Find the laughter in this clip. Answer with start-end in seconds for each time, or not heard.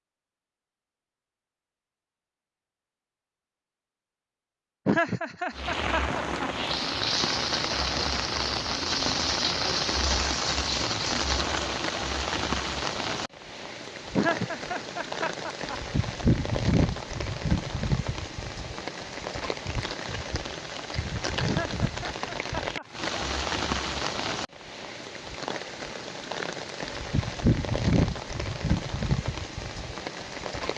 4.8-6.5, 14.2-15.8, 21.4-22.9.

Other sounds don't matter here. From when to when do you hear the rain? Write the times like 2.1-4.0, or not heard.
5.5-30.7.